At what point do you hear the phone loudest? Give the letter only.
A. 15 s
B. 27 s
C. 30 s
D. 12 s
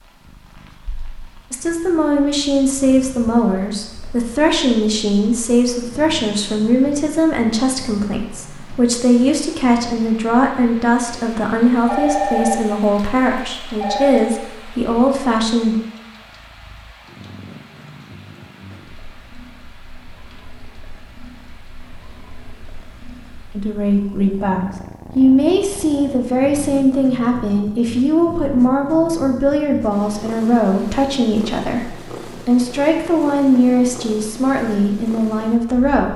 D.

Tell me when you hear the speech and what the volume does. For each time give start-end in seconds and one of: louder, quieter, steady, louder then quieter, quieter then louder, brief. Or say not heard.
1.5-15.8 steady
23.6-36.1 steady.